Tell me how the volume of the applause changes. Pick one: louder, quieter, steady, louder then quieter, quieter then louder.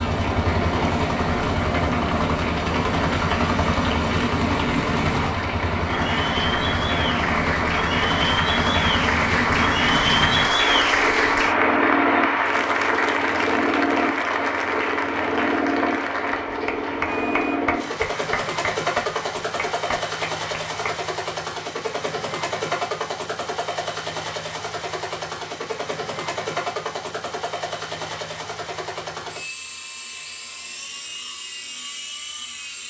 louder then quieter.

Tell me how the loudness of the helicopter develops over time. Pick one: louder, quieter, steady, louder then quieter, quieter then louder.
quieter.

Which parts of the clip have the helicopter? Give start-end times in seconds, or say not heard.
0.0-32.8.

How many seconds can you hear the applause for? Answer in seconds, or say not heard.
21 s.